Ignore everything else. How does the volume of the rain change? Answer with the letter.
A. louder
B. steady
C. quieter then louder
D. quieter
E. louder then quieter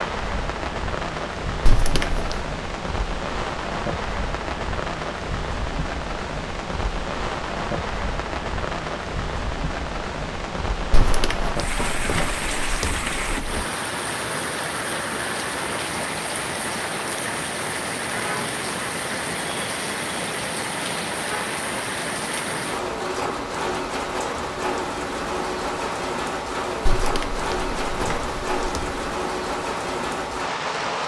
B.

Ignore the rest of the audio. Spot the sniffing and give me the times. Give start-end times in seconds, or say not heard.
not heard.